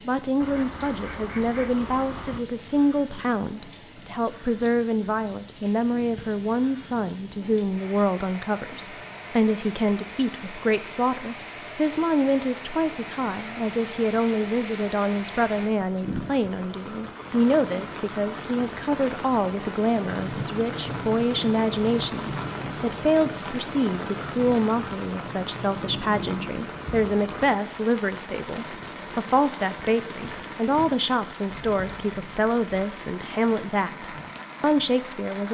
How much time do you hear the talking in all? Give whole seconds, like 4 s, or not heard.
35 s.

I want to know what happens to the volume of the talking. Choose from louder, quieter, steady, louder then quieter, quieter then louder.
steady.